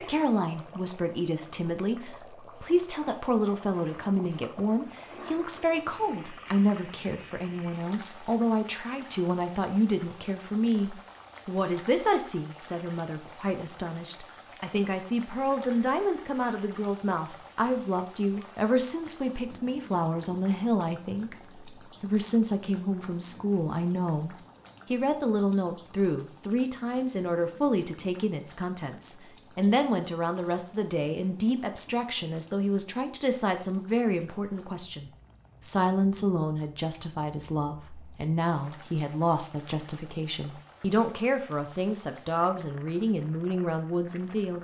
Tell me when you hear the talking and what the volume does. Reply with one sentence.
You can hear the talking from 0.1 to 44.5 s, at a steady volume.